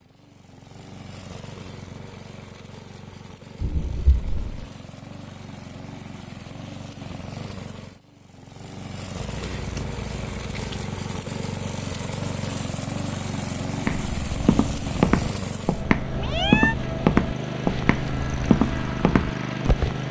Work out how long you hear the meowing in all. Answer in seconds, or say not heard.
3 s.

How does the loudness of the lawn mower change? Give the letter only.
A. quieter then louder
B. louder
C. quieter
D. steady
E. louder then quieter
B.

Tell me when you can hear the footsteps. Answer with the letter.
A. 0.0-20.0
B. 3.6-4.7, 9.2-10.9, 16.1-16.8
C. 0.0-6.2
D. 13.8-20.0
D.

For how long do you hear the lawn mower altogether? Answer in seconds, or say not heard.
20 s.